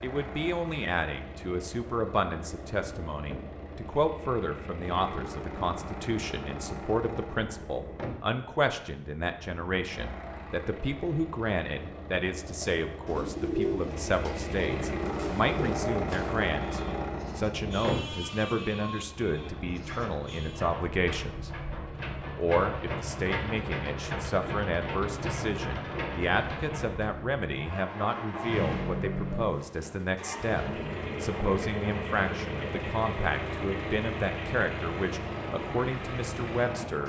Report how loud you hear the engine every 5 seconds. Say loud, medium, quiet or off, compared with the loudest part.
medium, medium, medium, loud, loud, loud, loud, loud.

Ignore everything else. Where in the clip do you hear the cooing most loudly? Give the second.
14 s.